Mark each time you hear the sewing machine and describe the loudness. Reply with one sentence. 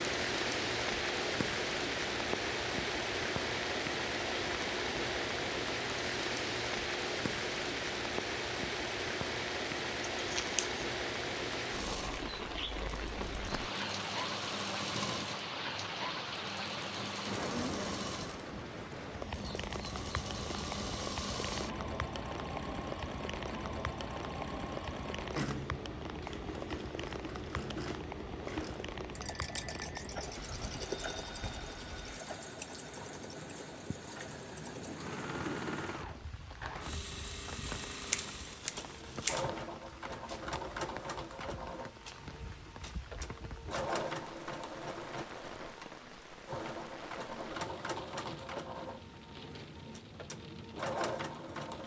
The sewing machine can be heard from 0.0 to 51.8 s, at a steady volume.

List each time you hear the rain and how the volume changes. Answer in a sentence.
You can hear the rain from 0.0 to 51.8 s, getting quieter.